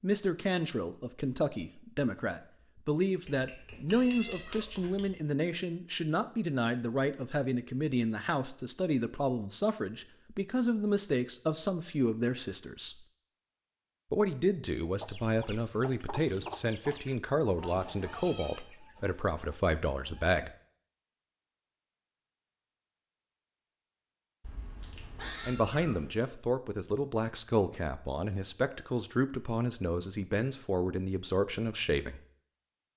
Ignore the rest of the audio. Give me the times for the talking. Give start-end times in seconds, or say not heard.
0.0-13.1, 14.1-20.5, 25.4-32.2.